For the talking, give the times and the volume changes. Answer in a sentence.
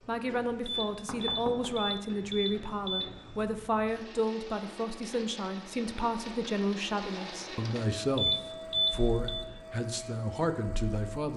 You can hear the talking from 0.1 to 11.3 s, at a steady volume.